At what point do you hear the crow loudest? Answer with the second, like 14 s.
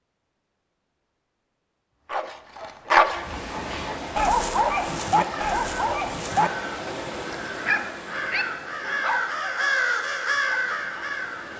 10 s.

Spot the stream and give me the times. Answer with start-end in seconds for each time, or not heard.
3.1-11.5.